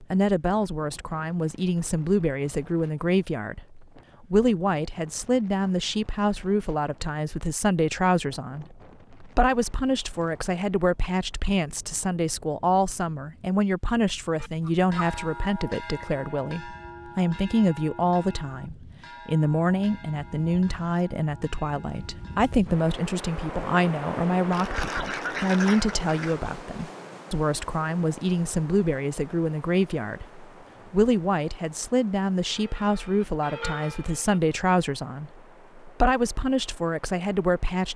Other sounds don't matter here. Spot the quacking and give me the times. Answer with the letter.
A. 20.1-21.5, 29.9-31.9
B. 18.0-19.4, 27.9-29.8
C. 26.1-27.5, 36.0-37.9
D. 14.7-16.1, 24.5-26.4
D.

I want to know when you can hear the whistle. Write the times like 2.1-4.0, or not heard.
not heard.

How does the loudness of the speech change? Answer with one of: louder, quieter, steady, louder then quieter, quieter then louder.
steady.